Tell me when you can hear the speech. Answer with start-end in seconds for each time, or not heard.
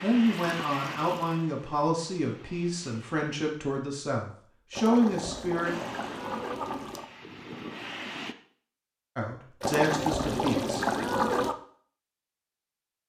0.0-5.8, 9.2-10.8.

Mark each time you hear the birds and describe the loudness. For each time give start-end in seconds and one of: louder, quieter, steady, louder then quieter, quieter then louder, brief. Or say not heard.
not heard.